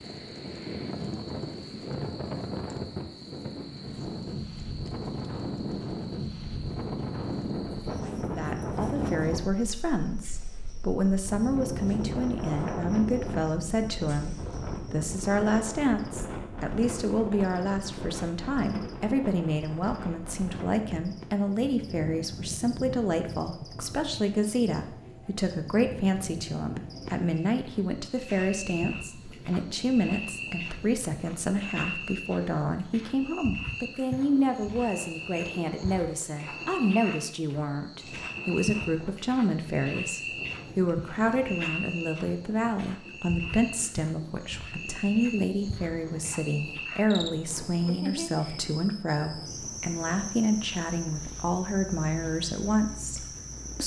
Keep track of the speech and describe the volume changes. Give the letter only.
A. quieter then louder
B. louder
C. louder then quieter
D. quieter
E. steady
E.